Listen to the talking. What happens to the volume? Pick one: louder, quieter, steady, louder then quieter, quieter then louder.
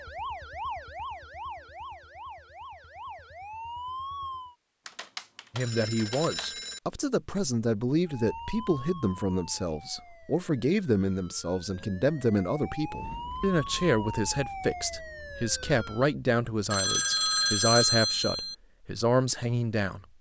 steady.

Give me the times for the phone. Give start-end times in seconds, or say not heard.
4.8-6.8, 16.7-18.6.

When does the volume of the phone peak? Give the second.
18 s.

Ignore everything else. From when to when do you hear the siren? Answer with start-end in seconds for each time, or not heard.
0.0-4.5, 8.1-16.1.